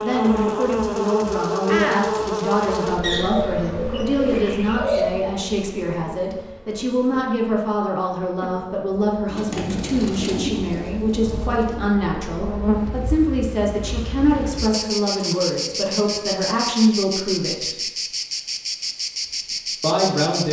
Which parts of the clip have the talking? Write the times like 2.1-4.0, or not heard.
0.0-17.9, 19.8-20.4.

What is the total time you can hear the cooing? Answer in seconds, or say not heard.
6 s.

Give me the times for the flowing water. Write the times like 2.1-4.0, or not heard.
not heard.